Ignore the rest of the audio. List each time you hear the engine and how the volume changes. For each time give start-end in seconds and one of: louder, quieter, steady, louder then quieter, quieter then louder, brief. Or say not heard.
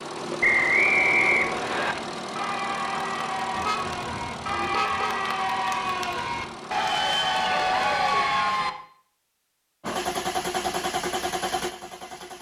0.0-8.2 quieter
9.8-12.3 brief.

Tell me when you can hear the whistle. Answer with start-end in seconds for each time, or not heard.
0.4-1.9.